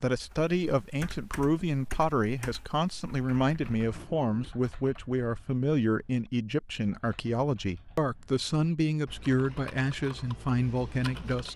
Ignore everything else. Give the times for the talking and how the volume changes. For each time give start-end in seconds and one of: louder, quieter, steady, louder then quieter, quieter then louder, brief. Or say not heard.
0.0-11.5 steady.